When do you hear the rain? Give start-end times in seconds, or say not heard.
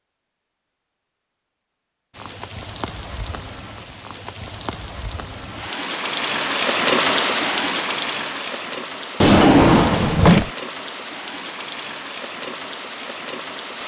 2.1-13.8.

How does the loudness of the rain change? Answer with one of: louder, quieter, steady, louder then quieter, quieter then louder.
louder then quieter.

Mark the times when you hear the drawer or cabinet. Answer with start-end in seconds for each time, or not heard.
9.2-10.5.